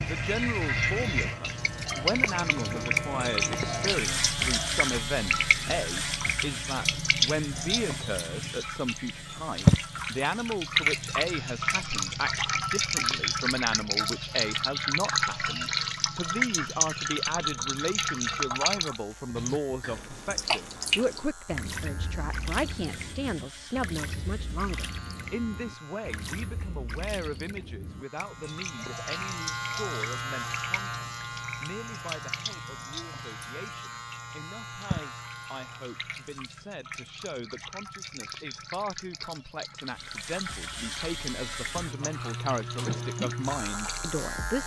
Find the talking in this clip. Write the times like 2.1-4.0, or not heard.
0.0-44.6.